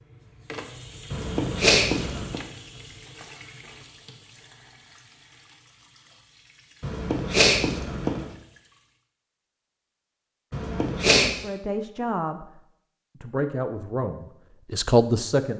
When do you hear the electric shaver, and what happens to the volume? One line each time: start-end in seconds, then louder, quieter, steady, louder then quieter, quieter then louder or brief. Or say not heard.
not heard.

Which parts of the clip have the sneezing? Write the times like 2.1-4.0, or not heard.
1.1-2.4, 6.8-8.3, 10.5-11.3.